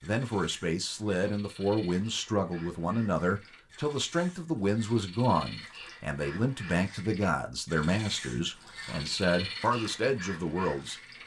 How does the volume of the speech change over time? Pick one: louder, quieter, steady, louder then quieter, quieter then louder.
steady.